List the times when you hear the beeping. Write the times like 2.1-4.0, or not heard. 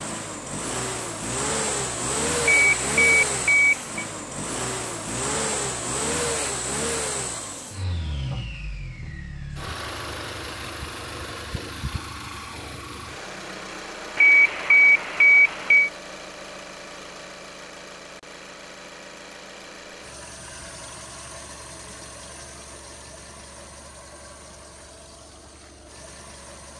2.5-4.0, 14.2-15.9.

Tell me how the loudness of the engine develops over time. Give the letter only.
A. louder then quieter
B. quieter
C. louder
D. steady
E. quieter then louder
B.